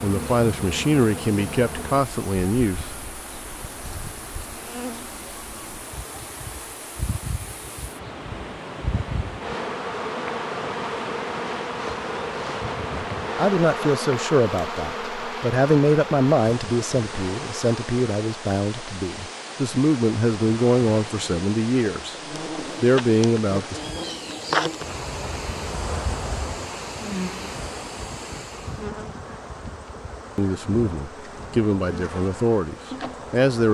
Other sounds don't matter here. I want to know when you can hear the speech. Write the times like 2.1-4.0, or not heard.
0.0-2.9, 12.9-22.1, 22.8-23.8, 30.4-33.6.